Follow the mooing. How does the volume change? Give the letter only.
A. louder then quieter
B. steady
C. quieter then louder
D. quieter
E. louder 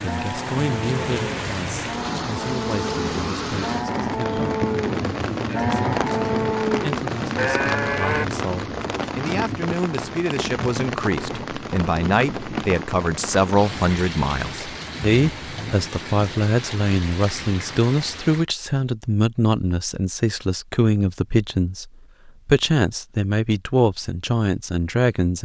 E.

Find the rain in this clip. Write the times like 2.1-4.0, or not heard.
0.0-18.4.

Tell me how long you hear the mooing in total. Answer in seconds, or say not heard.
8 s.